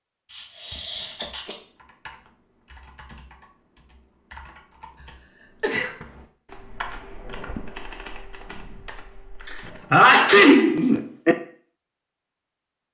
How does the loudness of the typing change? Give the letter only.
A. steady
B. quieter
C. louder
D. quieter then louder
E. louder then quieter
E.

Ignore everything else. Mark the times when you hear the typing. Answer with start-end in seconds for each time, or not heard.
1.1-9.9.